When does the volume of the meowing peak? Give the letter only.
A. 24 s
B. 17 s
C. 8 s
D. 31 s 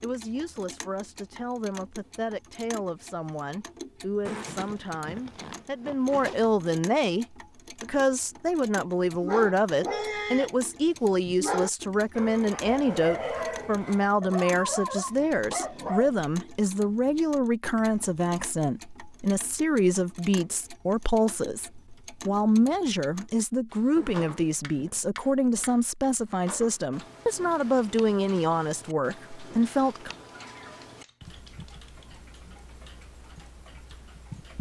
D.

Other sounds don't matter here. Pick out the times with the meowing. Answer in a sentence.
You can hear the meowing from 30.4 to 32.1 s.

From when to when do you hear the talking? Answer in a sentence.
The talking can be heard from 0.0 to 30.1 s.